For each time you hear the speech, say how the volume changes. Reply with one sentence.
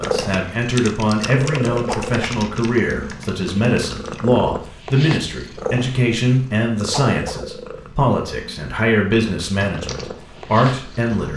The speech can be heard from 0.0 to 11.3 s, at a steady volume.